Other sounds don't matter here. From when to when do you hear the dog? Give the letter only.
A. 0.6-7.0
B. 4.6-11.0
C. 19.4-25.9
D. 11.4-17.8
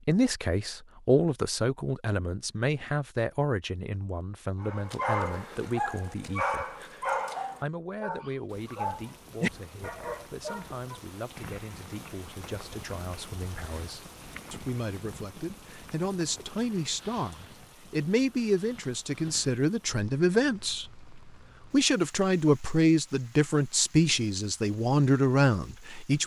B.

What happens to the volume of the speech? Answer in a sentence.
The volume of the speech goes down, then up.